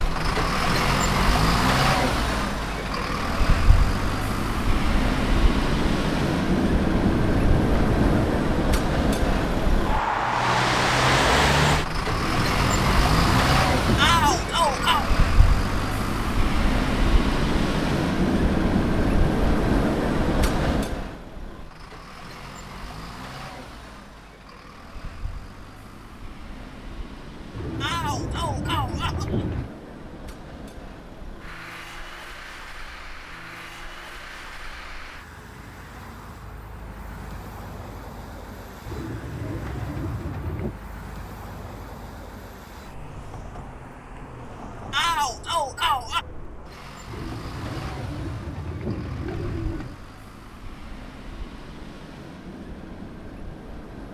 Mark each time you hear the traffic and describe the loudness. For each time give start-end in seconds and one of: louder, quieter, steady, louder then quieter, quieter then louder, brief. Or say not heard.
0.0-54.0 quieter.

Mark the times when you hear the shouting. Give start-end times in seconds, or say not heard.
13.9-15.1, 27.8-29.4, 44.9-46.2.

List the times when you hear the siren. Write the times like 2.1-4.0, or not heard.
not heard.